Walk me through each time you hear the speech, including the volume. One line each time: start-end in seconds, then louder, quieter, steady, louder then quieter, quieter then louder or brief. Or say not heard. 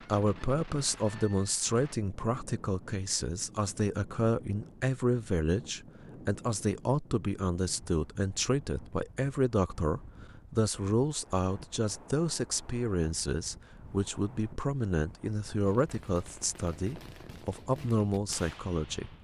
0.1-19.1 steady.